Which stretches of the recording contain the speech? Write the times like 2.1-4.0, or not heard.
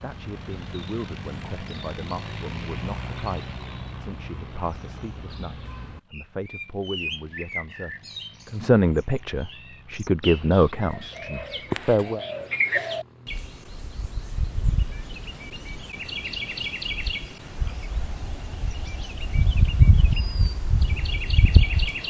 0.0-12.2.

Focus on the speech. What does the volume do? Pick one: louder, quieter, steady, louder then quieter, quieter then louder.
louder.